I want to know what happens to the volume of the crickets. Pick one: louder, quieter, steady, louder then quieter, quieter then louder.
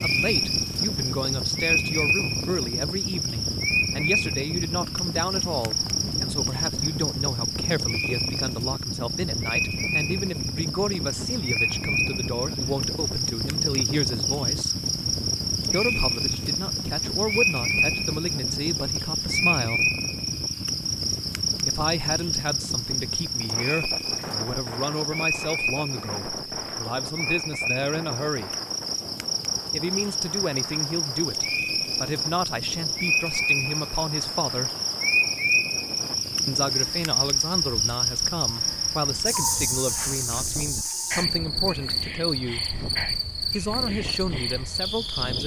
steady.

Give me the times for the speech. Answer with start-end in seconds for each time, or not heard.
0.0-14.8, 15.7-19.9, 21.6-28.6, 29.7-34.7, 36.5-42.7, 43.5-45.4.